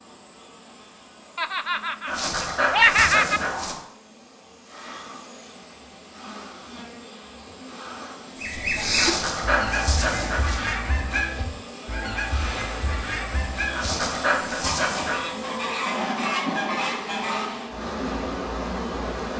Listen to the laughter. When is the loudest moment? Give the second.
3 s.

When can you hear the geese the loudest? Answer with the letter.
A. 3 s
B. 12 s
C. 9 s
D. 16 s
C.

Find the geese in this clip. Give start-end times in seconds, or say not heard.
8.3-17.6.